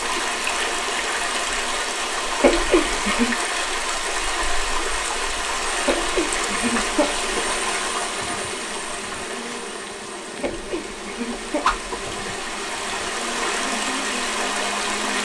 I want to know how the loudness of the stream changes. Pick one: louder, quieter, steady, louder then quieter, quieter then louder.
quieter then louder.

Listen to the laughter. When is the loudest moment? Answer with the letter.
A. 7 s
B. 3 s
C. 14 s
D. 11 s
B.